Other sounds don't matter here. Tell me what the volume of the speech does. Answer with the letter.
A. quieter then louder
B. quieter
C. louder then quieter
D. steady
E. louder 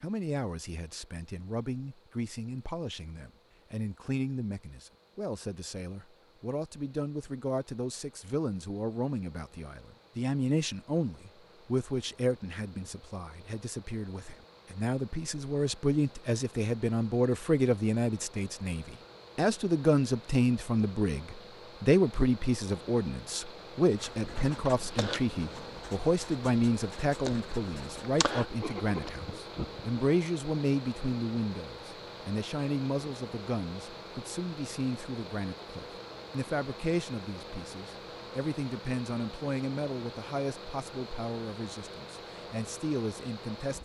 C.